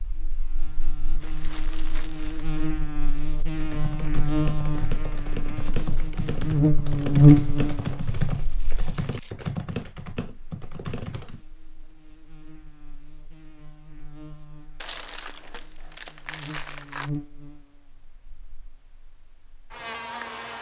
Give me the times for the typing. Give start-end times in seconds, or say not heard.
3.5-11.4.